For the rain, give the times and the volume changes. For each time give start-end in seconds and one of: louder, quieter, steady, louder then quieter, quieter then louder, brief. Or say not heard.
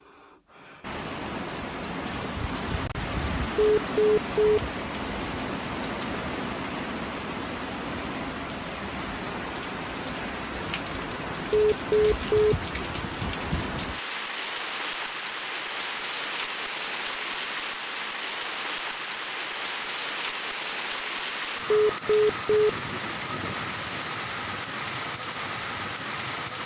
0.0-26.6 steady.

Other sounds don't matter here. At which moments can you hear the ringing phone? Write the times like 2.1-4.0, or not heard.
3.5-4.6, 11.5-12.6, 21.7-22.7.